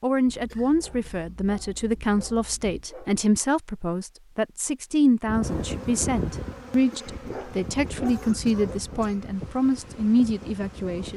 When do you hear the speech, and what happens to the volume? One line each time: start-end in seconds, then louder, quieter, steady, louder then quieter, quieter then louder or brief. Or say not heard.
0.0-11.1 steady.